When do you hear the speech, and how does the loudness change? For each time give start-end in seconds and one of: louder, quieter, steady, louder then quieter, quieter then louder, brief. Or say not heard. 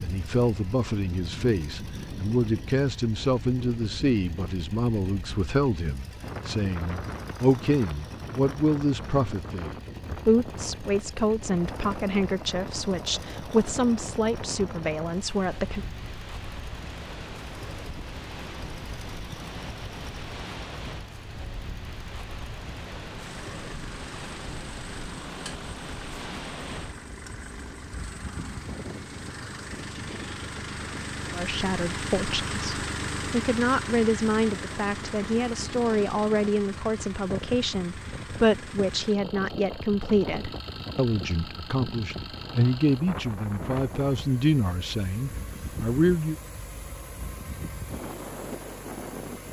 0.0-15.8 steady
31.4-46.4 steady.